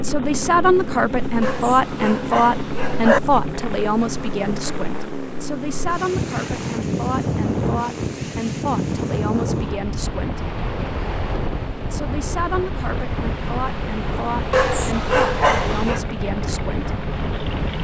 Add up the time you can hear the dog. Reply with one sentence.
The dog can be heard for 3 seconds in total.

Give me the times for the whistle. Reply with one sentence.
You can't hear the whistle here.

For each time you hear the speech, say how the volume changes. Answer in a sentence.
The speech can be heard from 0.0 to 10.4 s, getting quieter; and from 11.9 to 16.9 s, at a steady volume.